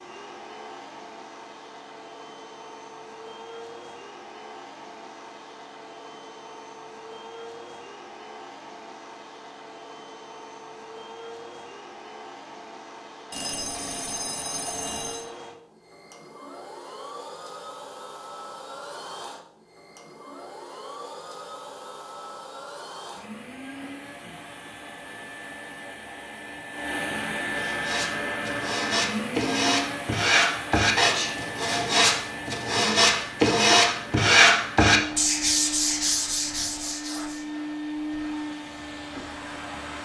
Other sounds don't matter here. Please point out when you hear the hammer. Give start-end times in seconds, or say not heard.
not heard.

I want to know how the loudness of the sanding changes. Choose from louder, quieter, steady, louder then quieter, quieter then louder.
louder then quieter.